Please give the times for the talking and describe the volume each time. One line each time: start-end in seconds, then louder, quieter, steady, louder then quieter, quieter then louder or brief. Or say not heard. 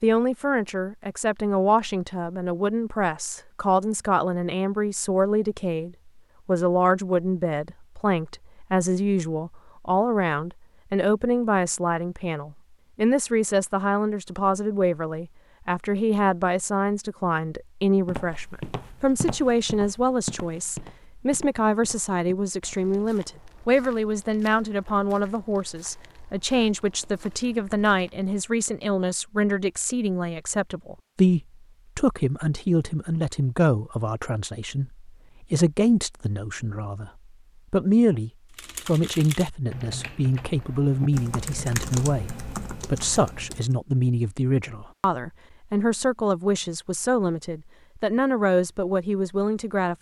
0.0-37.1 steady
37.7-49.9 steady.